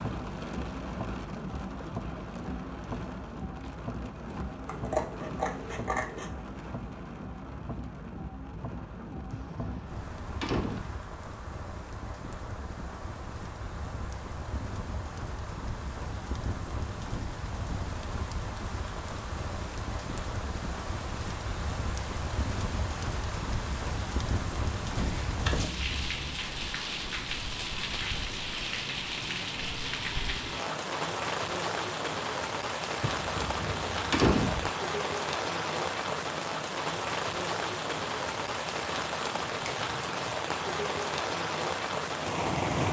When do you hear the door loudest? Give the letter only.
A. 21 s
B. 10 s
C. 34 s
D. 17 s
C.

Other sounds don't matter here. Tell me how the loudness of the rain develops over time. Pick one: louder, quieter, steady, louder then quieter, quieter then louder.
louder.